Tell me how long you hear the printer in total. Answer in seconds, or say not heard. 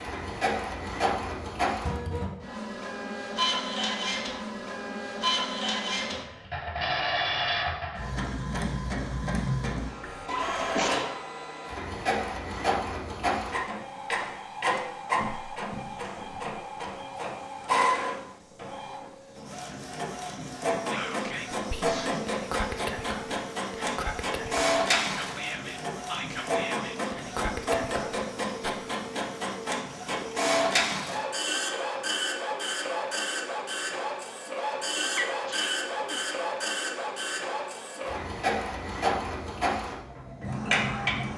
41 s.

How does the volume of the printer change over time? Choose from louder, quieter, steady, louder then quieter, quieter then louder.
steady.